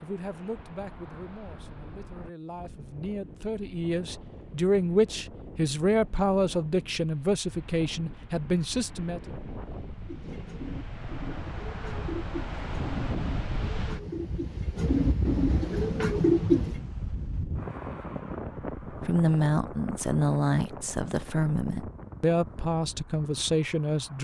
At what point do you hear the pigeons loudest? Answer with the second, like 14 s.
16 s.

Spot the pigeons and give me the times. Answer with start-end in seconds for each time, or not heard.
10.0-16.8.